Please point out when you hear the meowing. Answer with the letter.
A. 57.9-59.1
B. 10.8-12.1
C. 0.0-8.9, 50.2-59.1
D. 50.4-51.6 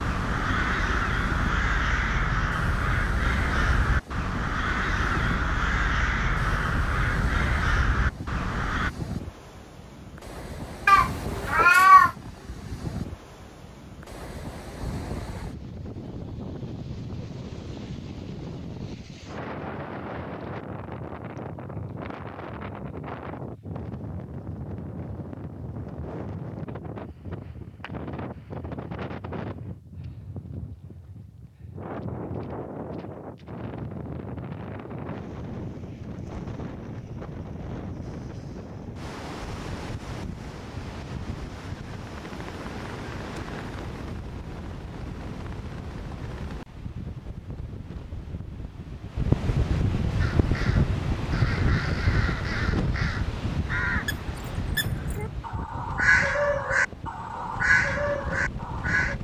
B.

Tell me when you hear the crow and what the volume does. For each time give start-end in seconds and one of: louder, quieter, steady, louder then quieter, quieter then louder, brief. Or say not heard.
0.0-8.9 steady
50.2-59.1 louder.